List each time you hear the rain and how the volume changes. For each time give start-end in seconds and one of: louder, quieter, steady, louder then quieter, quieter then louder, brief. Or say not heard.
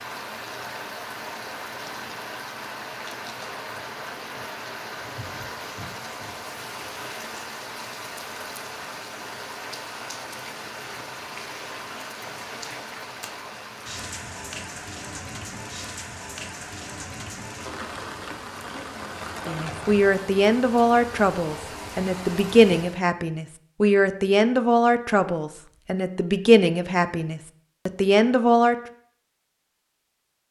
0.0-23.0 steady.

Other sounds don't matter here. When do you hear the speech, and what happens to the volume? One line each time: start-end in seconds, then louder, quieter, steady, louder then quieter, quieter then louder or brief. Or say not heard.
19.4-28.8 steady.